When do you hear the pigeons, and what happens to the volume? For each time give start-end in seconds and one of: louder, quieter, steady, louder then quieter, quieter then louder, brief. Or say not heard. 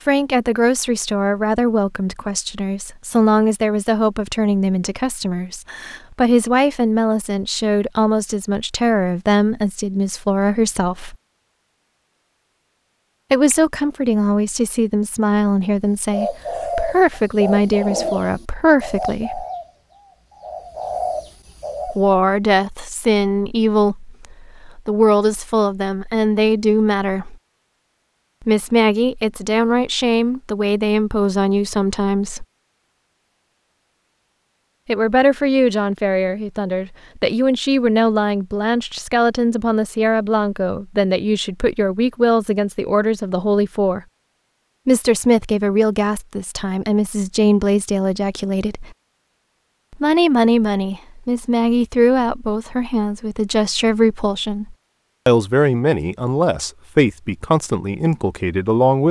15.9-22.1 quieter then louder.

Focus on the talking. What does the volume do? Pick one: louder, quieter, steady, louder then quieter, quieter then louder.
steady.